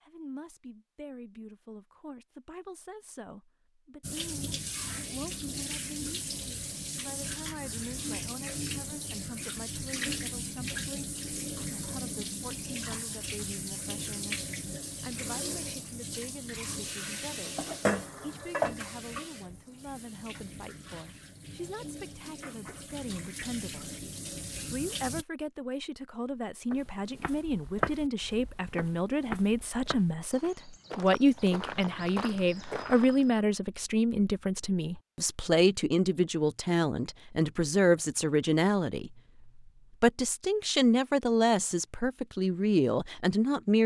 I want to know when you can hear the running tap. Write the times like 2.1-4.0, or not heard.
4.0-25.2.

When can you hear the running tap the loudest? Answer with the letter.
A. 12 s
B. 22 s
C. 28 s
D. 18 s
D.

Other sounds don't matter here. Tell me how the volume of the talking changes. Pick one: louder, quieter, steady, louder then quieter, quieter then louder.
louder.